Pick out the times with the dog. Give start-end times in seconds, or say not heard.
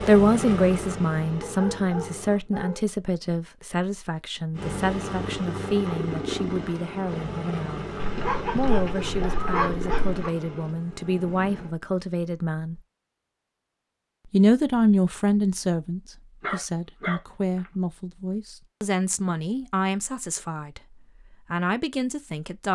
1.4-2.9, 8.0-10.3, 16.4-17.7.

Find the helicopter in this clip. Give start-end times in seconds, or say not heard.
0.0-2.4, 4.5-11.8.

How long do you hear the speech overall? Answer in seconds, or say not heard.
20 s.